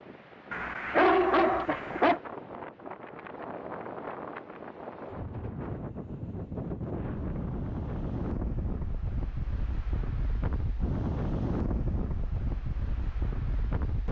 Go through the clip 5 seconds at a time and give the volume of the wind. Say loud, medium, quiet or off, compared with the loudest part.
medium, loud, loud.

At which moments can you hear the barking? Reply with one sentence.
The barking can be heard from 0.5 to 2.2 s.